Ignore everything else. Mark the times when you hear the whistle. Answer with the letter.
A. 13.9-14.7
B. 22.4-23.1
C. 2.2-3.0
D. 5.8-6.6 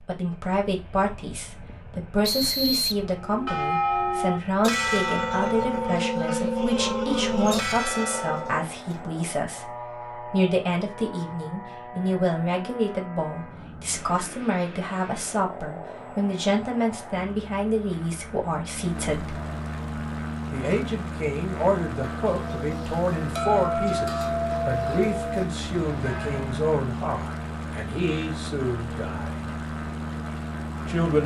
C.